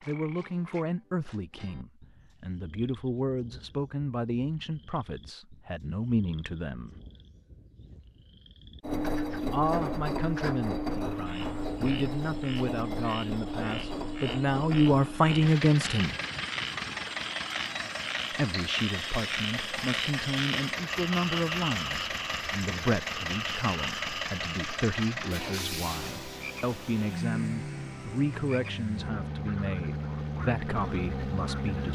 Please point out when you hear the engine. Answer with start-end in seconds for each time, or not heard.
8.8-31.9.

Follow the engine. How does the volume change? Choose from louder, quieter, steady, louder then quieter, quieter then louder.
steady.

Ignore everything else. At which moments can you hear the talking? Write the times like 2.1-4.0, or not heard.
0.1-6.9, 9.5-16.1, 18.3-31.9.